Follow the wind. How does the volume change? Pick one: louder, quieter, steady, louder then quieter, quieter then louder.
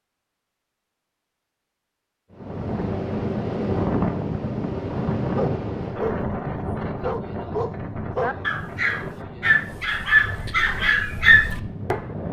quieter.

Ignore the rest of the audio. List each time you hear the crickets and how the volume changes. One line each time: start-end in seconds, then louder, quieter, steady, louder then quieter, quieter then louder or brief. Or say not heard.
not heard.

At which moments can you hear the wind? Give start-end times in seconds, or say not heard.
2.3-12.2.